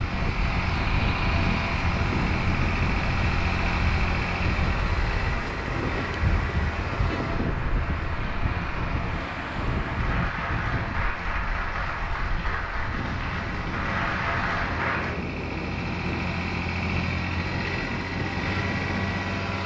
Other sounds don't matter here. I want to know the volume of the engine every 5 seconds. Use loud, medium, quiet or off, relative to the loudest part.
loud, medium, medium, loud.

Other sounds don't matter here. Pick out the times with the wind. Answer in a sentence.
The wind can be heard from 0.0 to 19.6 s.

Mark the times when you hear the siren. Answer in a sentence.
You can't hear the siren here.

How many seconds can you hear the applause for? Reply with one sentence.
You can hear the applause for 15 seconds altogether.